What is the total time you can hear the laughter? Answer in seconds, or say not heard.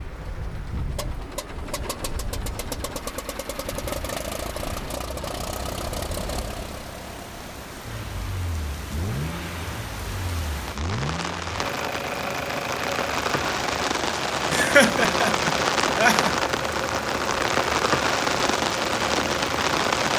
2 s.